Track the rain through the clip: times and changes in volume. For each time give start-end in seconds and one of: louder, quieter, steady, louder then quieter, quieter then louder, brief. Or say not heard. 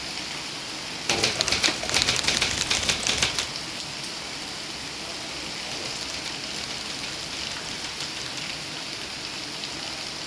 0.0-10.2 steady.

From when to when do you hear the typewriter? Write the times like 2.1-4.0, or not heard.
1.1-3.5, 5.7-8.4.